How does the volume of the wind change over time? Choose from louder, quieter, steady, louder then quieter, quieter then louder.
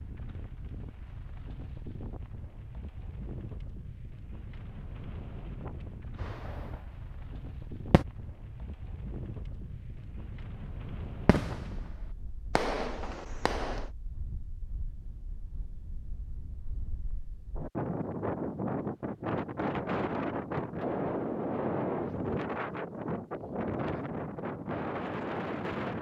louder.